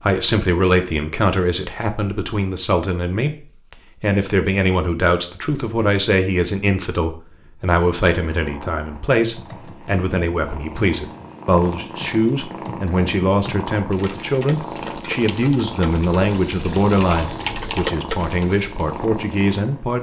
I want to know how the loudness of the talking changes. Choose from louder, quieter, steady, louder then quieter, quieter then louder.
steady.